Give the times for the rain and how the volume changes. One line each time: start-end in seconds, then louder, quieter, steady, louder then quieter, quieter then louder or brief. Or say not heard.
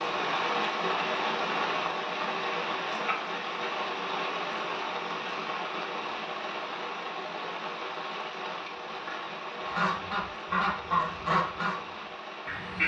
0.0-12.8 quieter.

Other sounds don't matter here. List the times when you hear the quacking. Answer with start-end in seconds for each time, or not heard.
9.8-12.8.